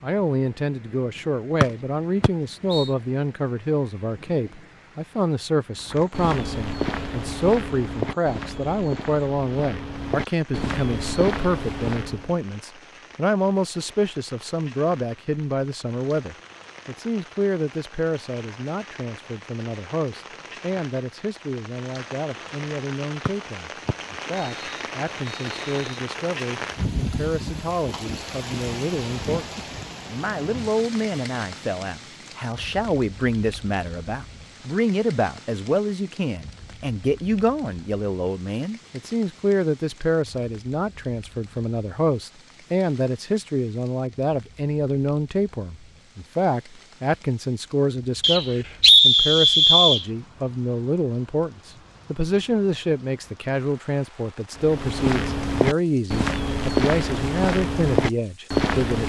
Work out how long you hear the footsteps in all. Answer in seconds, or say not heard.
11 s.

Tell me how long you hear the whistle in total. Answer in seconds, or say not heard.
6 s.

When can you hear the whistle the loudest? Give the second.
49 s.